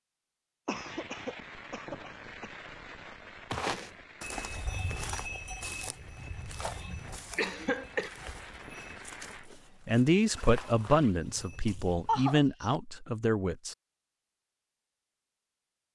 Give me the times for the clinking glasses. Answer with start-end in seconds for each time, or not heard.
not heard.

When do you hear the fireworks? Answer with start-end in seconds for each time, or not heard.
0.7-9.5.